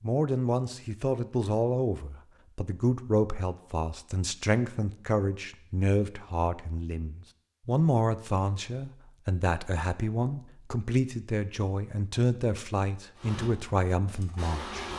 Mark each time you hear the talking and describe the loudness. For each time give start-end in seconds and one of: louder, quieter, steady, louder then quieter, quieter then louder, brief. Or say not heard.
0.0-14.9 steady.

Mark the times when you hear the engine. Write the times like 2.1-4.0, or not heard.
13.2-14.9.